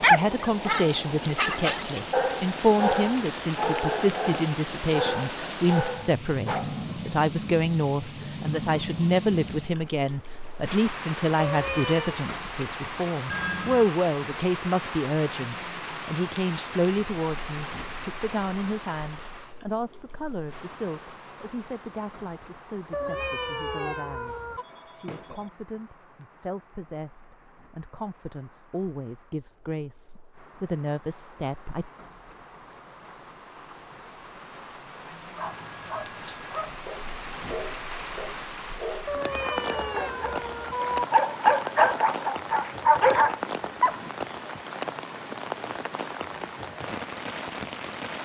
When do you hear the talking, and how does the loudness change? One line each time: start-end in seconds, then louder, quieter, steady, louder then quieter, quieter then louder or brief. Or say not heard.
0.0-31.9 quieter.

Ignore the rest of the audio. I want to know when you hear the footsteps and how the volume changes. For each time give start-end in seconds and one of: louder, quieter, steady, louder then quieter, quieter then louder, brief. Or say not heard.
not heard.